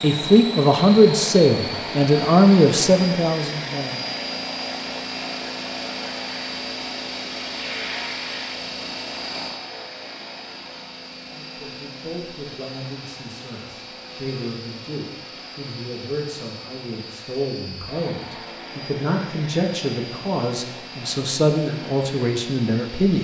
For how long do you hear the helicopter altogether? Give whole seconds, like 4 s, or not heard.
23 s.